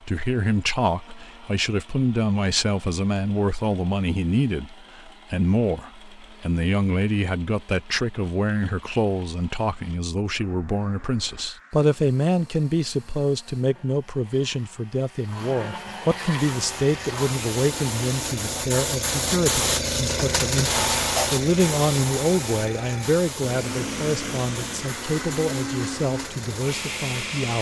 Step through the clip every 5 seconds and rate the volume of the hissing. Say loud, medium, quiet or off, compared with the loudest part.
off, off, off, loud, loud, medium.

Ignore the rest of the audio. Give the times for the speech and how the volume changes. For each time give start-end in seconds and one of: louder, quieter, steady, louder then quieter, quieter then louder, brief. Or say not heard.
0.1-27.5 steady.